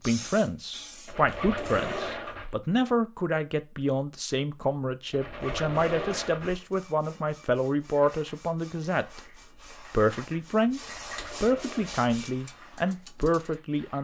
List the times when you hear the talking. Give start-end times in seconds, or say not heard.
0.1-9.2, 9.8-10.8, 11.4-14.0.